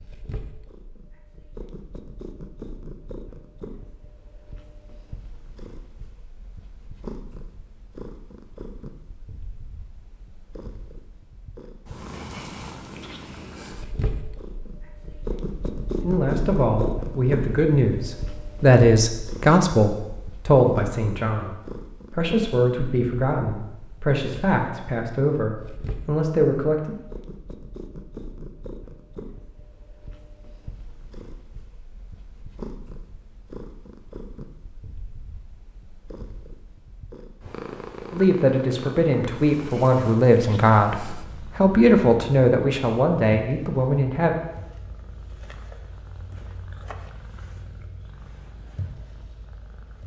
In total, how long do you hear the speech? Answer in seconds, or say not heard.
17 s.